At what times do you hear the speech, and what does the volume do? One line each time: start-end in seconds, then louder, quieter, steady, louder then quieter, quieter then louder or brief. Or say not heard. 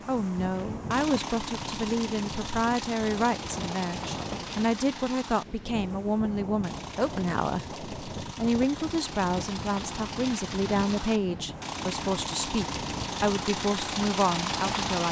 0.1-15.0 steady.